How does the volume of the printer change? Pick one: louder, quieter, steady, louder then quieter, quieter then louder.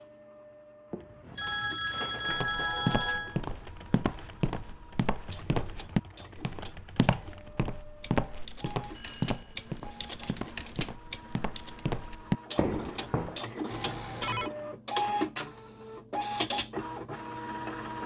louder.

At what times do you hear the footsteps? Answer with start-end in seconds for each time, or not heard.
2.2-13.4.